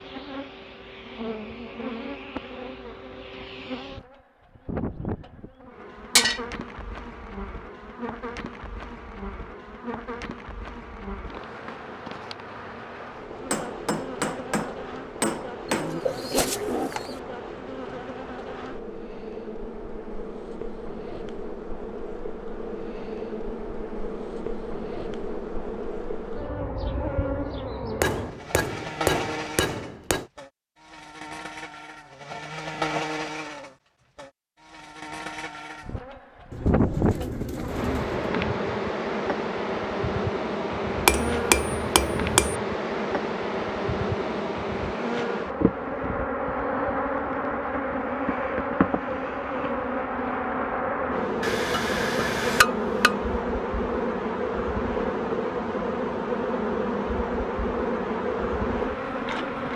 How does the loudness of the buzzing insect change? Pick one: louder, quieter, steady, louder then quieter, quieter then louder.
louder.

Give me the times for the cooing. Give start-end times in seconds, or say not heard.
15.7-17.2, 36.5-38.4.